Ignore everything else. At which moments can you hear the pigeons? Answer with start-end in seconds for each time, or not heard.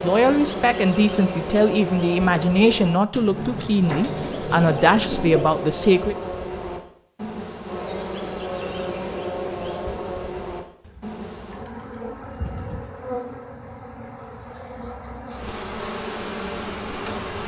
3.1-5.7, 10.8-13.2.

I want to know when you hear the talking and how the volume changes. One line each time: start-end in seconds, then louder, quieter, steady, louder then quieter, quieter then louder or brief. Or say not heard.
0.0-6.2 steady.